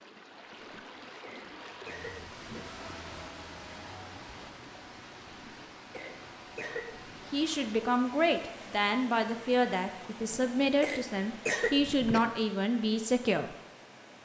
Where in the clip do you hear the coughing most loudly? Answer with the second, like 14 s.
12 s.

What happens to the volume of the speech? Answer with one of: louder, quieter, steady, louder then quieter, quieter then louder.
steady.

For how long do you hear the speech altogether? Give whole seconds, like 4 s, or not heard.
6 s.